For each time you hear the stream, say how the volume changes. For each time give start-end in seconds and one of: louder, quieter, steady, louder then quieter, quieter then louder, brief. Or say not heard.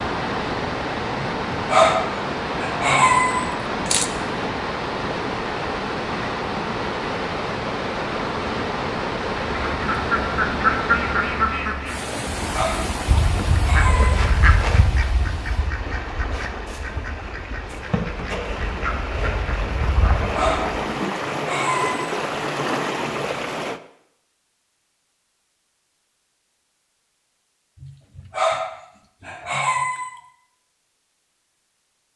0.0-23.8 quieter then louder.